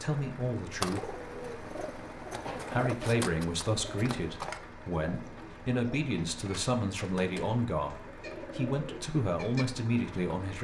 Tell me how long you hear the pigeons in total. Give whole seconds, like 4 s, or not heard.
9 s.